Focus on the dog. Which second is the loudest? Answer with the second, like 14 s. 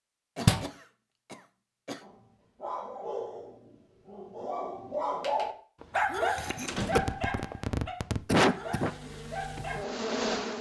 6 s.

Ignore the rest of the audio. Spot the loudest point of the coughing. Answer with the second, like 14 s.
8 s.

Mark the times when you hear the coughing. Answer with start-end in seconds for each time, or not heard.
0.3-2.0, 6.3-8.9.